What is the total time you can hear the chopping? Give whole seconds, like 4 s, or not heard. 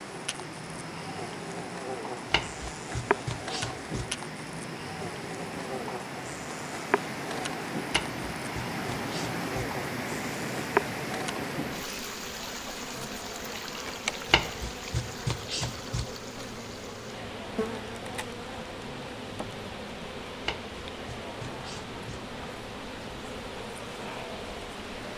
7 s.